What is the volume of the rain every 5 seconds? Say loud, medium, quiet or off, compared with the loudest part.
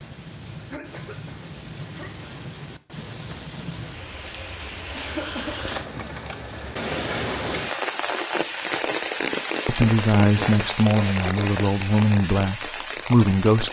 medium, loud, loud.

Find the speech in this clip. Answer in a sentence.
The speech can be heard from 9.7 to 13.6 s.